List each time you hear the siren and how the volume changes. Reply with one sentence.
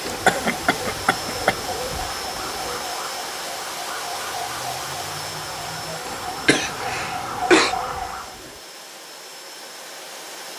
The siren can be heard from 0.0 to 8.4 s, getting louder.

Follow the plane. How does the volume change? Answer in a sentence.
The loudness of the plane goes down.